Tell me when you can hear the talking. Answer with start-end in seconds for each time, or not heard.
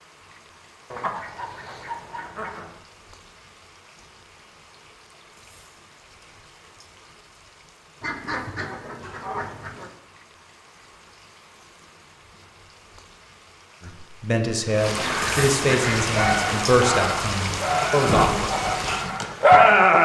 13.8-18.5.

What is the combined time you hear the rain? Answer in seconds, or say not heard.
20 s.